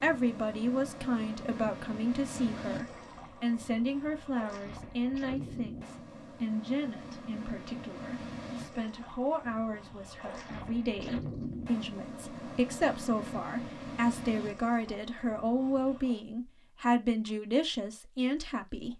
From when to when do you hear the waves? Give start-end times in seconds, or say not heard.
0.0-16.2.